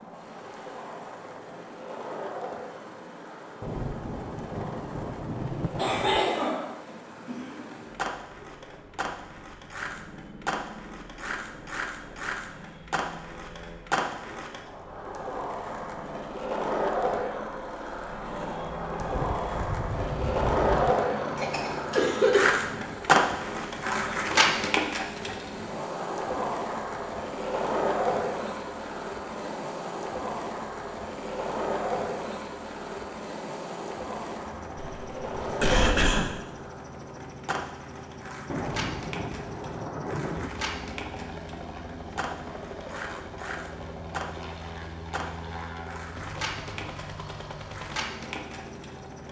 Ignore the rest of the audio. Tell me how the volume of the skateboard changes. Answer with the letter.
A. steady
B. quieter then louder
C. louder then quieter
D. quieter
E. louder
C.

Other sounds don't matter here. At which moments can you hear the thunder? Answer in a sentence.
The thunder can be heard from 3.6 to 6.3 s, from 19.0 to 20.9 s and from 38.5 to 40.5 s.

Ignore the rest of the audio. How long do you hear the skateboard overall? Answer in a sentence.
The skateboard can be heard for 49 seconds in total.